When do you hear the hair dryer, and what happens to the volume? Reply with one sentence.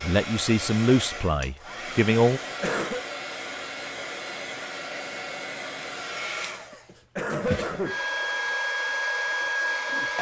The hair dryer can be heard from 0.0 to 10.1 s, getting louder.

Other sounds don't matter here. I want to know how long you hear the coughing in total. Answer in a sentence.
The coughing can be heard for 2 seconds in total.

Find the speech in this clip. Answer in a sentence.
The speech can be heard from 0.0 to 2.4 s.